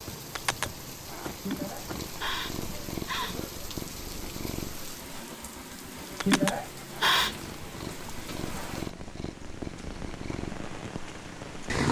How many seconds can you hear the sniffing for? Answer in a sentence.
The sniffing can be heard for 3 seconds in total.